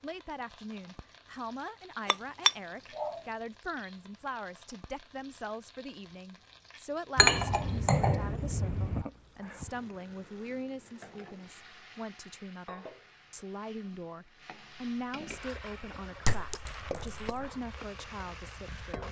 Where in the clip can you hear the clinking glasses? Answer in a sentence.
The clinking glasses can be heard from 2.1 to 3.1 s, from 7.2 to 9.1 s and from 16.2 to 17.3 s.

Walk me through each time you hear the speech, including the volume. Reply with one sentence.
You can hear the speech from 0.0 to 19.0 s, at a steady volume.